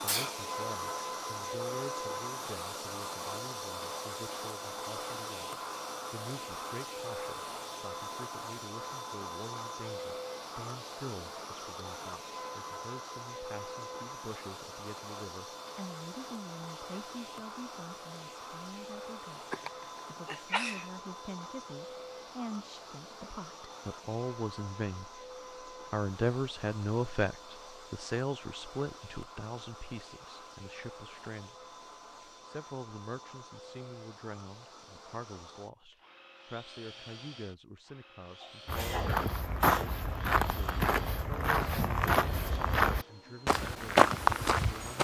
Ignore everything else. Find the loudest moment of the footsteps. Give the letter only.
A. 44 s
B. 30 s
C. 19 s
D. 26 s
A.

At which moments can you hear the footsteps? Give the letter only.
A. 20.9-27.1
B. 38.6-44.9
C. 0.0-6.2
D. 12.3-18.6
B.